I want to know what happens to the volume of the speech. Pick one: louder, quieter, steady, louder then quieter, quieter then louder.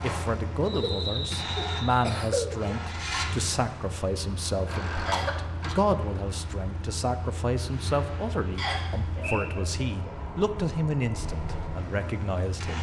steady.